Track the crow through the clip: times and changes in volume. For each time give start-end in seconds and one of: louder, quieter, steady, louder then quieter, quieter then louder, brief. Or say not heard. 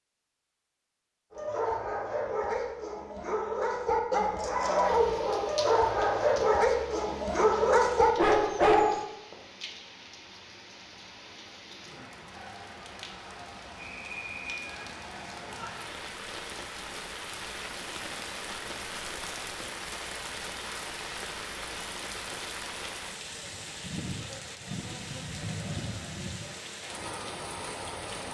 not heard.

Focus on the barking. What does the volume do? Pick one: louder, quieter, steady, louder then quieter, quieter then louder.
louder.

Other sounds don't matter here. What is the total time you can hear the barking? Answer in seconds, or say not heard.
8 s.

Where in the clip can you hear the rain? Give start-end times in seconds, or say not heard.
4.8-28.2.